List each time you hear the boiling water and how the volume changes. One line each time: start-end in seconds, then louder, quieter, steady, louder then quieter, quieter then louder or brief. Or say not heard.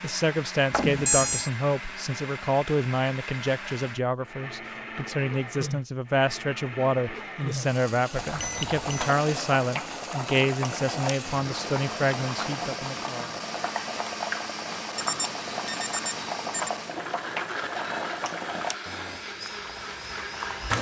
8.1-20.7 steady.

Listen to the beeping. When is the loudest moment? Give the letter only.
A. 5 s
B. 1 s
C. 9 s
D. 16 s
B.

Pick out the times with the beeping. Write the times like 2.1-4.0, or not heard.
0.7-1.5, 8.2-9.2, 14.9-16.7.